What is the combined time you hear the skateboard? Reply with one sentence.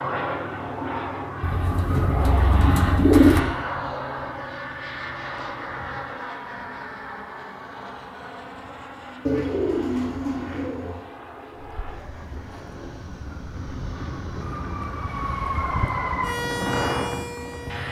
You can't hear the skateboard here.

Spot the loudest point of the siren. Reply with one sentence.
The volume of the siren peaks at 16 seconds.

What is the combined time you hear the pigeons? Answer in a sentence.
The pigeons can be heard for 4 seconds in total.